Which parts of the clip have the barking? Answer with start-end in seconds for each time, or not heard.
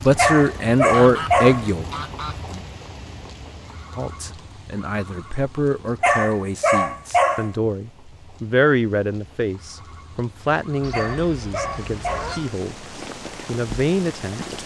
0.1-1.6, 6.0-7.5, 10.9-12.4.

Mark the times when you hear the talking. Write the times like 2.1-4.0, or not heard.
0.0-1.9, 4.0-12.8, 13.4-14.6.